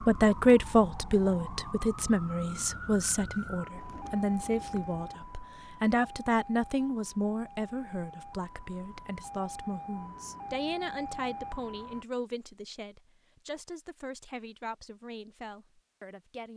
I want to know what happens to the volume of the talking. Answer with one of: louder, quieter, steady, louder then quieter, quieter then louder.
quieter.